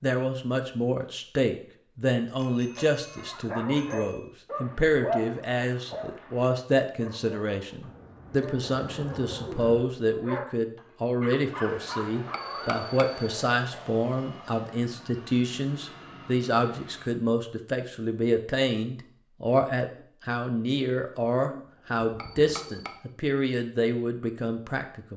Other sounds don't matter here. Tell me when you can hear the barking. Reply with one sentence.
You can hear the barking from 2.6 to 12.8 s.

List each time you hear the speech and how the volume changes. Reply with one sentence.
The speech can be heard from 0.0 to 25.1 s, at a steady volume.